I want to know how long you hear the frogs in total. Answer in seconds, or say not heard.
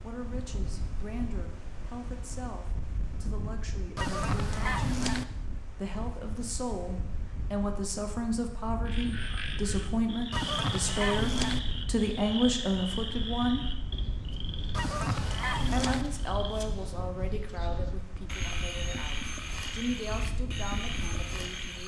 13 s.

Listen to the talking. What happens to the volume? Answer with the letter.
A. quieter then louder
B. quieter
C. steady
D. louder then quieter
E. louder
D.